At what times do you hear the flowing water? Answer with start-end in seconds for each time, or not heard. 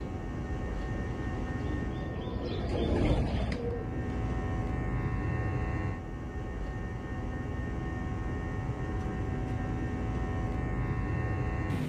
not heard.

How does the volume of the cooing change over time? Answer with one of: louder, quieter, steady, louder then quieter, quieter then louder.
louder.